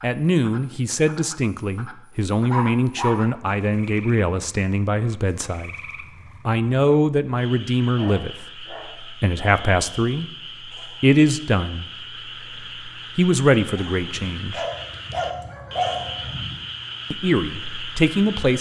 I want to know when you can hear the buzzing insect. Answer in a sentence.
The buzzing insect can't be heard in this clip.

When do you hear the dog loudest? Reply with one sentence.
The volume of the dog peaks at 16 seconds.